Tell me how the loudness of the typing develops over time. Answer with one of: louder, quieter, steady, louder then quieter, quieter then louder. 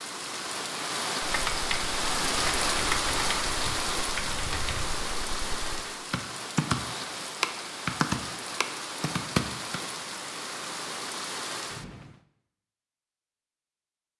quieter then louder.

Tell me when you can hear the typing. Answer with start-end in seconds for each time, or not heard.
1.2-9.8.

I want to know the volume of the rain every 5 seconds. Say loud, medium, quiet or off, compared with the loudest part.
loud, medium, medium.